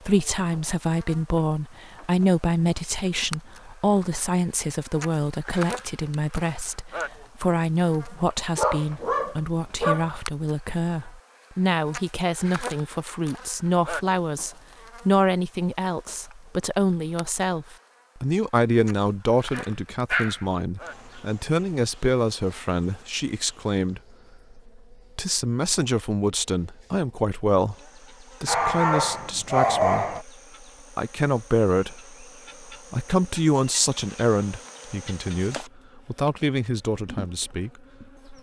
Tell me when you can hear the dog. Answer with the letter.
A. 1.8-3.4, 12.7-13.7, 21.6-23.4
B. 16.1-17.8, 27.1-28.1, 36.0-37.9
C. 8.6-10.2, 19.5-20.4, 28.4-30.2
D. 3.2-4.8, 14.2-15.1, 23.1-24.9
C.